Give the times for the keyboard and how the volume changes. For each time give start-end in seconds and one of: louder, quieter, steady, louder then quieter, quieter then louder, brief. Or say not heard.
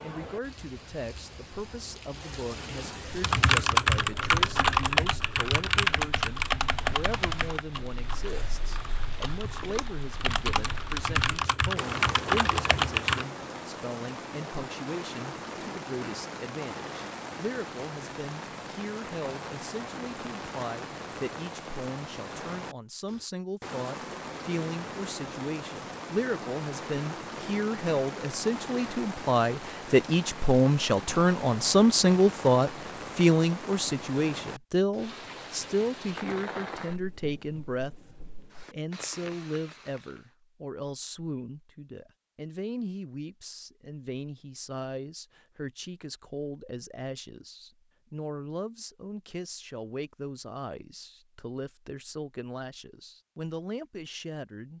3.2-13.2 quieter then louder.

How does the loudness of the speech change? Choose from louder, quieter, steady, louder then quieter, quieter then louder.
louder then quieter.